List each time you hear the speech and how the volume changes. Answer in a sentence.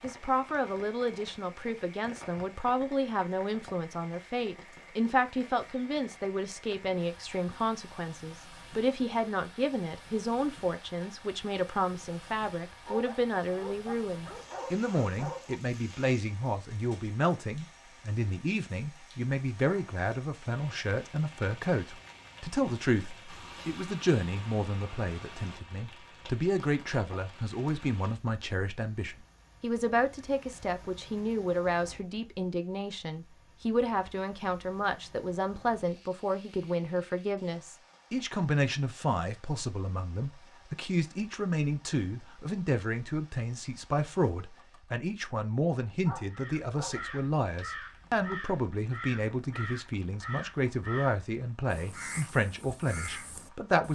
You can hear the speech from 0.0 to 53.9 s, at a steady volume.